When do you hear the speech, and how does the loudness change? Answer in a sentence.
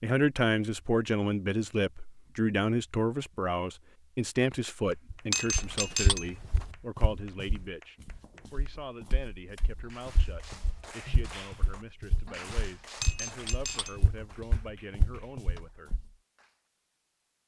The speech can be heard from 0.0 to 15.9 s, getting quieter.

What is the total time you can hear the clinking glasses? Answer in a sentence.
The clinking glasses can be heard for 3 seconds in total.